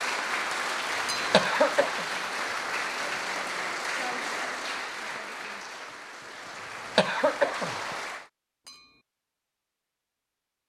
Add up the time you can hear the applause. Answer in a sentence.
You can hear the applause for 8 seconds altogether.